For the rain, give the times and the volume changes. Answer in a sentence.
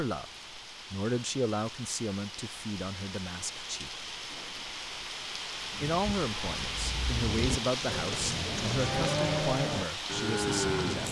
You can hear the rain from 0.0 to 11.0 s, getting louder.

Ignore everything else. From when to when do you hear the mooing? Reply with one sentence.
The mooing can be heard from 5.8 to 11.0 s.